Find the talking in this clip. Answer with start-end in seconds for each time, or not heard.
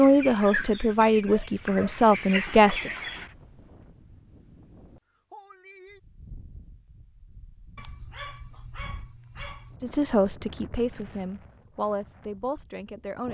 0.0-2.9, 9.8-13.2.